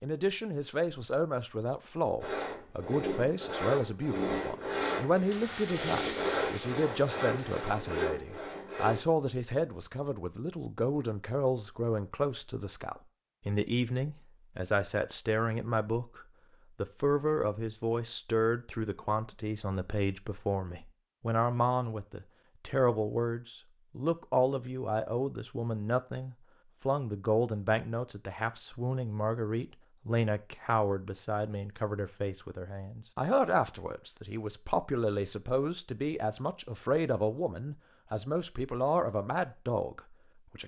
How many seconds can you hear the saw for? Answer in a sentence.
The saw can be heard for 7 seconds in total.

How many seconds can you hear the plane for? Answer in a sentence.
You can hear the plane for 3 seconds altogether.